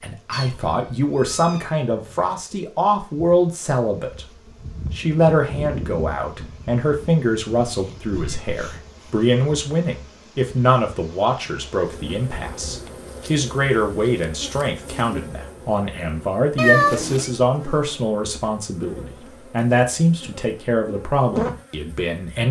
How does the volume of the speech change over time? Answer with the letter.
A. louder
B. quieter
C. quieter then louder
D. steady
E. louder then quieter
D.